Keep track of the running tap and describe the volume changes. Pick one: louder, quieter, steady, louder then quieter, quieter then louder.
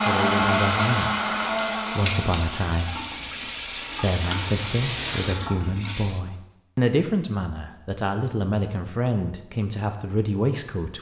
louder.